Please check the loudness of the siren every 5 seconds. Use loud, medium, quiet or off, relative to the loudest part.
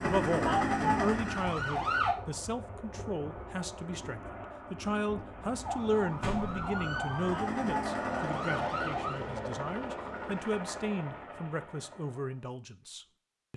loud, medium, off.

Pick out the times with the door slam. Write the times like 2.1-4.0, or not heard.
6.2-6.7.